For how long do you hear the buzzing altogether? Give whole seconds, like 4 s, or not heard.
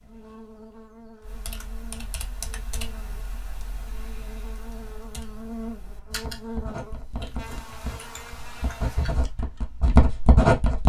9 s.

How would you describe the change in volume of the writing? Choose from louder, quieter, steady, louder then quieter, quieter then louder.
quieter then louder.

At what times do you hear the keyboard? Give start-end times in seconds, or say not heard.
1.2-9.6.